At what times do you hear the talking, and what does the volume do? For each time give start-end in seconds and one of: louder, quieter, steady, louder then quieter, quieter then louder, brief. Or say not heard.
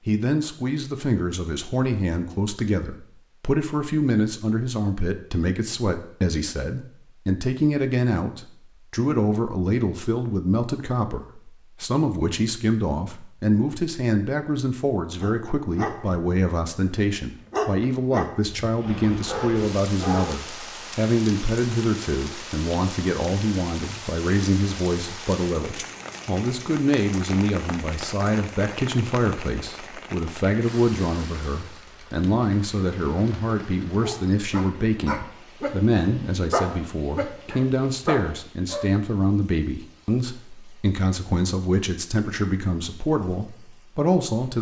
0.1-44.5 steady.